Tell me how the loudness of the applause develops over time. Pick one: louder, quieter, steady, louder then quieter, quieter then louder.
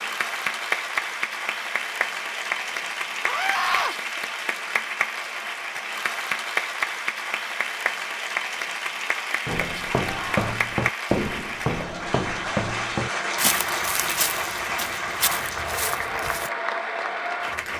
steady.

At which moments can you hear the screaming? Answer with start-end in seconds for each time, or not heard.
3.2-4.0, 10.0-10.5.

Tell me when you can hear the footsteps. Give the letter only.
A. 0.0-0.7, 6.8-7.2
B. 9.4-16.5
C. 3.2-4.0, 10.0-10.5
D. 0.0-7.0
B.